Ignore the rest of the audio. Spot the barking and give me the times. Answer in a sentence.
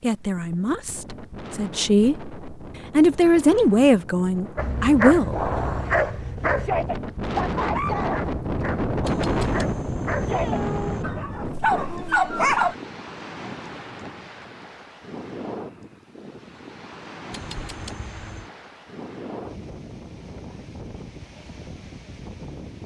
You can hear the barking from 4.5 to 12.8 s.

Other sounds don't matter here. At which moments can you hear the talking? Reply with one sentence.
You can hear the talking from 0.0 to 5.3 s.